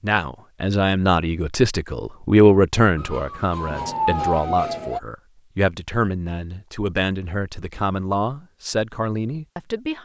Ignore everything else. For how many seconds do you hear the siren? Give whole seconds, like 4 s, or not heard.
2 s.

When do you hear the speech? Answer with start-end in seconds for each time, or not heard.
0.0-10.0.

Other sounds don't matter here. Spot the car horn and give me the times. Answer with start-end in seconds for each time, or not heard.
not heard.